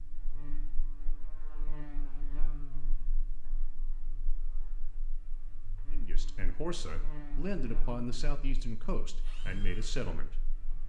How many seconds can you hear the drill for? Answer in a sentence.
You can hear the drill for 2 seconds altogether.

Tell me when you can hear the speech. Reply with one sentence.
You can hear the speech from 5.9 to 10.4 s.